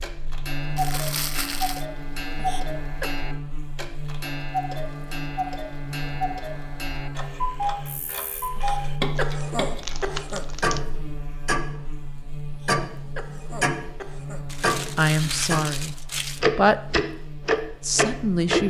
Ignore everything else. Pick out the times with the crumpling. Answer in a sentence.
The crumpling can be heard from 0.8 to 1.9 s, from 9.2 to 10.8 s and from 14.4 to 16.4 s.